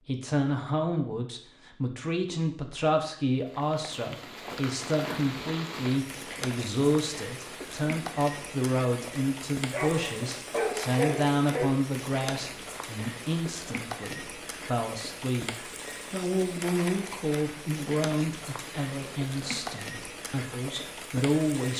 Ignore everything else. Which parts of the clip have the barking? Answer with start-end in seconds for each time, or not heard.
9.7-11.7.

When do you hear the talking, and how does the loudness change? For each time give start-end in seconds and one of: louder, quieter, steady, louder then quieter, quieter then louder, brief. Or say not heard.
0.0-21.7 steady.